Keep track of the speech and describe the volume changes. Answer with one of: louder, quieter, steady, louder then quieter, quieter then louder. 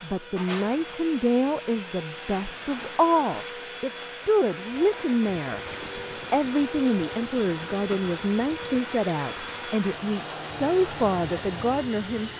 steady.